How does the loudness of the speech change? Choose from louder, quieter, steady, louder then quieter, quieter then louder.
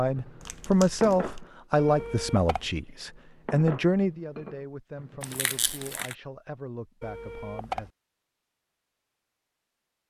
quieter.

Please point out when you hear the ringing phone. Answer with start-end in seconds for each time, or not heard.
1.8-2.7, 7.0-7.9.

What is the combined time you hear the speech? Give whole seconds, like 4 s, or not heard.
8 s.